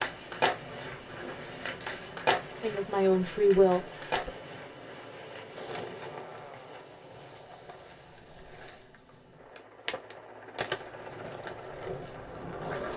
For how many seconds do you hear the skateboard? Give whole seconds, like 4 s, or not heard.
13 s.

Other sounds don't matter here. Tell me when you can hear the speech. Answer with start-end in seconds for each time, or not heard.
2.6-4.3.